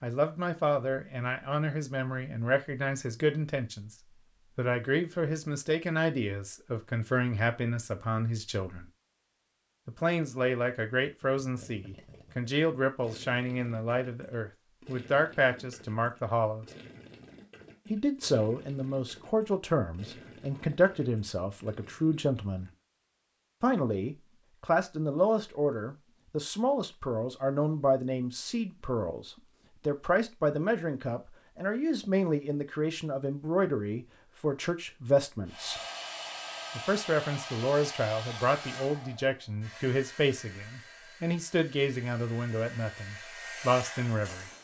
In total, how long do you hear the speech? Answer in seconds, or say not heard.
40 s.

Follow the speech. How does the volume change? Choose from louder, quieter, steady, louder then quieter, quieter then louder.
steady.